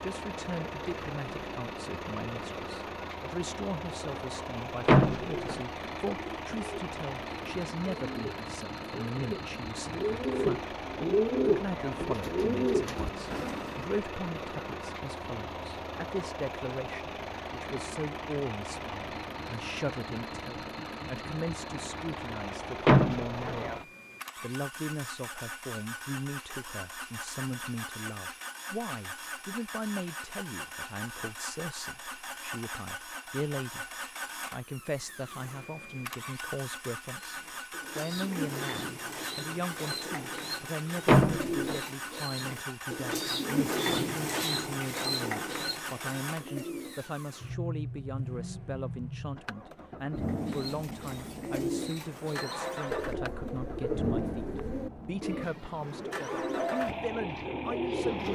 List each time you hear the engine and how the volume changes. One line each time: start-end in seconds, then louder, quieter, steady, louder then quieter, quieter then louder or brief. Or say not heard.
0.0-58.3 steady.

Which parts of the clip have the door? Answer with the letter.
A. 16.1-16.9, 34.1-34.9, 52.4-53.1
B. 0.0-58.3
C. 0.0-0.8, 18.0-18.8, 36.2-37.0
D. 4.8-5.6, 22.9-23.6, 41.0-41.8
D.